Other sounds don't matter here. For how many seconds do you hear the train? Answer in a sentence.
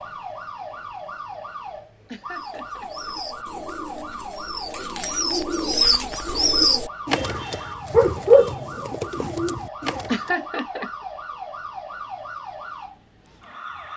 The train can't be heard in this clip.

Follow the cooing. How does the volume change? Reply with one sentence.
The volume of the cooing goes up, then down.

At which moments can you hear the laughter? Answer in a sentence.
The laughter can be heard from 2.0 to 3.1 s and from 10.1 to 10.9 s.